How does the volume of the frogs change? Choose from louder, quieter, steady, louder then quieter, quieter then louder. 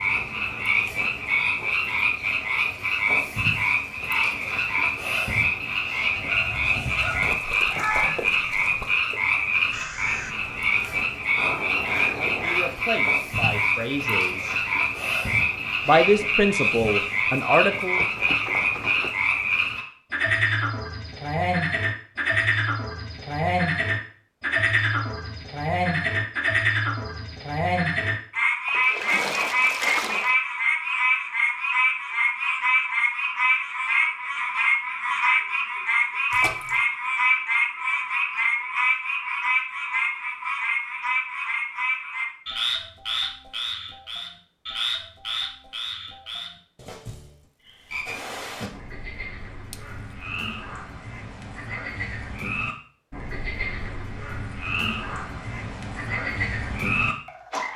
quieter.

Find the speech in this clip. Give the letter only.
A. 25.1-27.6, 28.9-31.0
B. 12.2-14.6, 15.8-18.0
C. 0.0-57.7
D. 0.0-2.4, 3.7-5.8
B.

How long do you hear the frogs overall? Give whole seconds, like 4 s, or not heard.
58 s.